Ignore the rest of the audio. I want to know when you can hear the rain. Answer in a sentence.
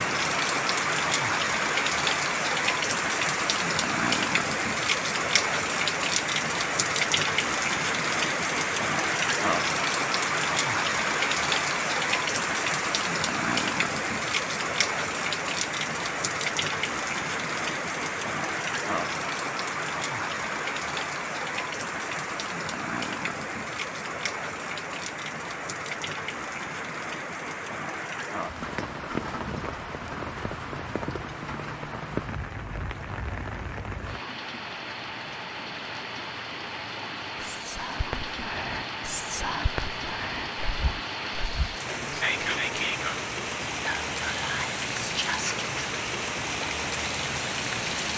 The rain can be heard from 0.0 to 48.1 s.